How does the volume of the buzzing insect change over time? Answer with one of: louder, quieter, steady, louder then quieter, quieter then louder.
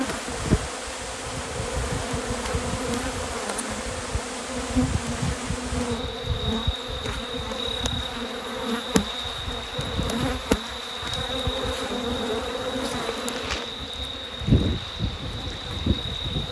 steady.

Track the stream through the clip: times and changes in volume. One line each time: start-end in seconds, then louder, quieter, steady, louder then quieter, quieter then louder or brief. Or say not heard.
0.0-16.4 steady.